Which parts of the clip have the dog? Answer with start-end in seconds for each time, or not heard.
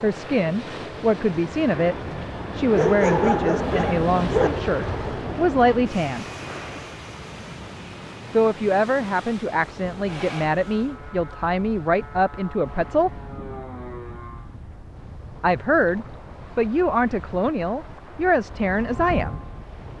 2.7-4.5.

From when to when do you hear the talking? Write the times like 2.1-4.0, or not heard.
0.0-6.3, 8.3-13.1, 15.4-19.4.